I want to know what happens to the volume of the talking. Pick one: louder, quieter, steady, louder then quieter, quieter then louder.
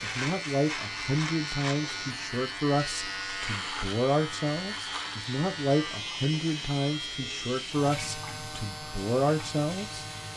steady.